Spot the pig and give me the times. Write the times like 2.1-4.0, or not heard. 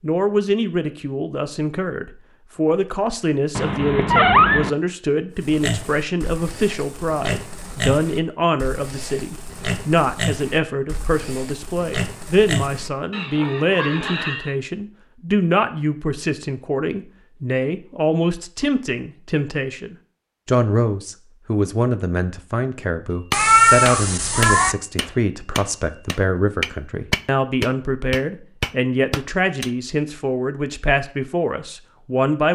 5.3-14.6.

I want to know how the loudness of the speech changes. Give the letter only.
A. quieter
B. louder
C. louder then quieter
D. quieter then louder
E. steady
E.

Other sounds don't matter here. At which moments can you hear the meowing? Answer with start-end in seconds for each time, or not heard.
3.5-4.7, 23.3-24.8.